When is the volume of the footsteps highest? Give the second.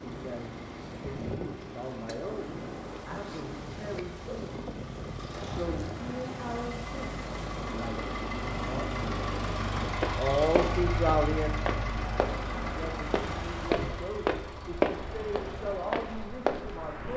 15 s.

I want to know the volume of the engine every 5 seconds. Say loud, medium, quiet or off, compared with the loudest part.
quiet, loud, loud, quiet.